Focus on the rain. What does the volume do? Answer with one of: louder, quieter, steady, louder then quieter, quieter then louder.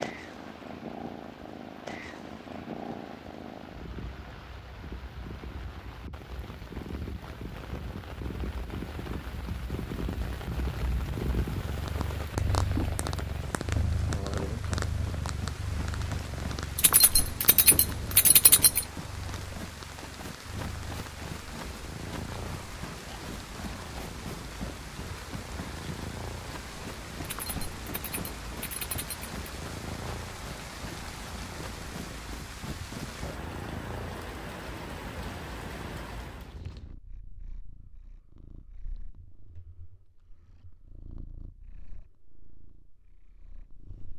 louder.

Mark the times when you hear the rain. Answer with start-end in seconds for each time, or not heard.
0.0-36.6.